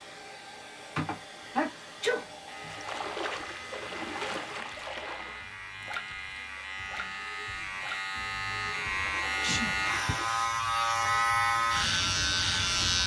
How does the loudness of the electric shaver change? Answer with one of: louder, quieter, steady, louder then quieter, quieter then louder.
louder.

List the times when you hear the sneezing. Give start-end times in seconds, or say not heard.
0.9-2.8, 9.4-10.2.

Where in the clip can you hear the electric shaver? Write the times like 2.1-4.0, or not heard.
2.5-13.0.